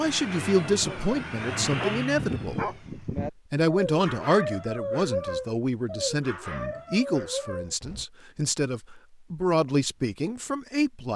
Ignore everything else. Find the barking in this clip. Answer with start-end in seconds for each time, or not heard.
0.8-8.1.